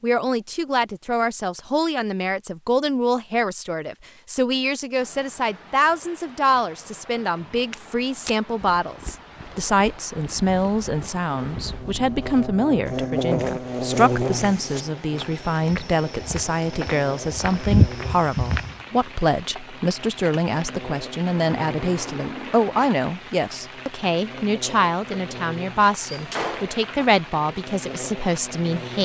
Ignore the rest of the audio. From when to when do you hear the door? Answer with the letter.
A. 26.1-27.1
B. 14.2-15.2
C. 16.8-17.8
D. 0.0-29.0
A.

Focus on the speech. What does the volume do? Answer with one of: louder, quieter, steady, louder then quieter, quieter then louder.
steady.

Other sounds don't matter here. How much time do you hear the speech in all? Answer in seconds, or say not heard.
29 s.